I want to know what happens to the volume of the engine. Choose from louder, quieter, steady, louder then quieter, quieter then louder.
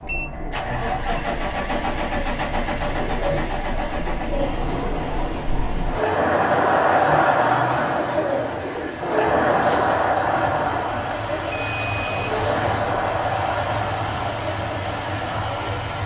quieter then louder.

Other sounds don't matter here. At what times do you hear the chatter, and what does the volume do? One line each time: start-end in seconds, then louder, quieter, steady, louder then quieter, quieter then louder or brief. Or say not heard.
0.0-16.0 louder then quieter.